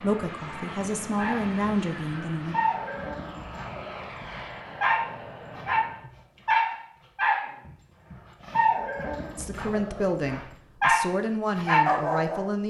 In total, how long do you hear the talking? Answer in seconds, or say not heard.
6 s.